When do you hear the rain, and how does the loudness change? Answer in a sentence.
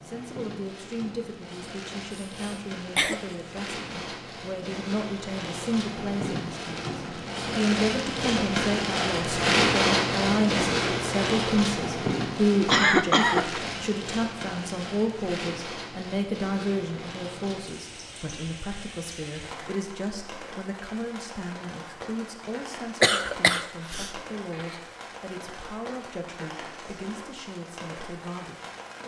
The rain can be heard from 0.0 to 29.0 s, getting louder then quieter.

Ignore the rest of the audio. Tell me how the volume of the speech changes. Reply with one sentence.
The volume of the speech goes up, then down.